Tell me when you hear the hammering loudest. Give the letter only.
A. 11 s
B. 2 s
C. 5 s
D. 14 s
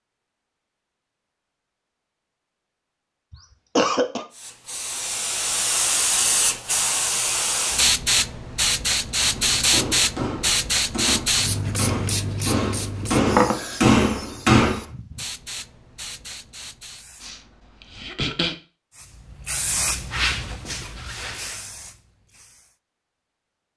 D.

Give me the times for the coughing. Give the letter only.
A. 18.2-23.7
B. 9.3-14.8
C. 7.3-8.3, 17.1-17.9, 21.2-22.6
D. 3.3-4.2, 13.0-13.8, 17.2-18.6
D.